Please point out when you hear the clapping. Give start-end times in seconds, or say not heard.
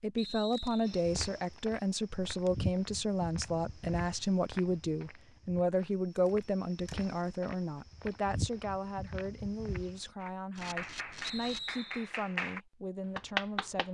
10.2-13.8.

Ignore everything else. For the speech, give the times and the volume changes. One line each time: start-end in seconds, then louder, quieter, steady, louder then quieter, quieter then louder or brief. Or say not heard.
0.0-13.8 quieter.